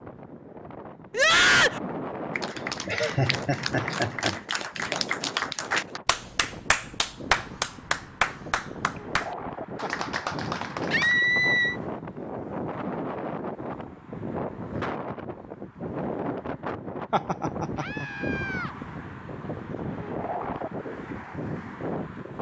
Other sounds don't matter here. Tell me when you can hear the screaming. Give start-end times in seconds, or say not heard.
1.1-1.8, 10.9-11.8, 17.8-18.8.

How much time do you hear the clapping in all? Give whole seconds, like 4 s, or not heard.
9 s.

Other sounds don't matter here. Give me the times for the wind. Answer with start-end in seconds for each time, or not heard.
0.0-22.3.